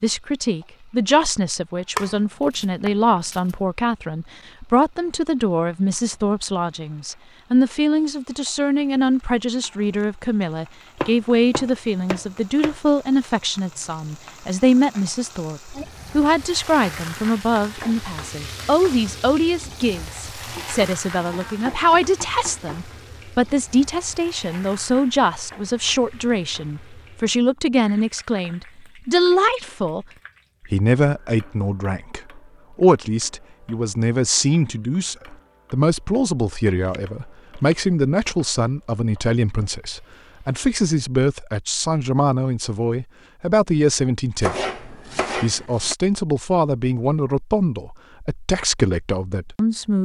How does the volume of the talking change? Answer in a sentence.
The volume of the talking stays about the same.